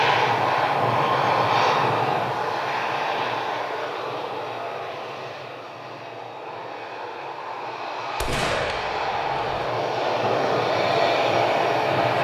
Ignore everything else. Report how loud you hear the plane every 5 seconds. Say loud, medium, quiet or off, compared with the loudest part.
loud, medium, loud.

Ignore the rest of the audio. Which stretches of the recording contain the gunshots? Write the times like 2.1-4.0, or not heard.
8.2-9.7.